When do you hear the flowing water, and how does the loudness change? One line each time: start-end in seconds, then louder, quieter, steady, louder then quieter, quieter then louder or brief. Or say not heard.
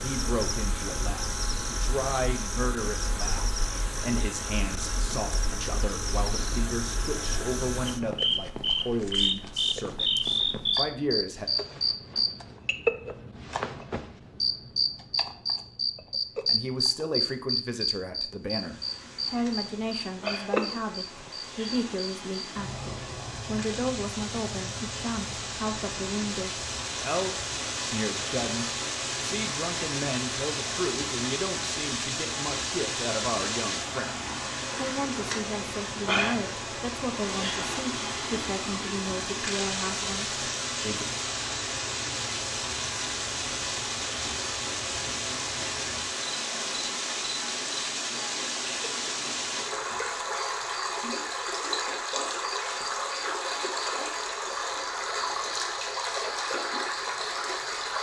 18.4-57.9 louder.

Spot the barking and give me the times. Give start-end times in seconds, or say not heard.
not heard.